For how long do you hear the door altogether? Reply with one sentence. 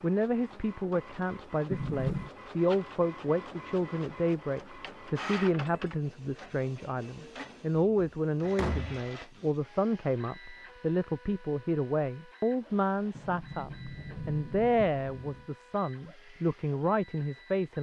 The door can be heard for 4 seconds in total.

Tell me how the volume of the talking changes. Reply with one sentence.
The loudness of the talking stays about the same.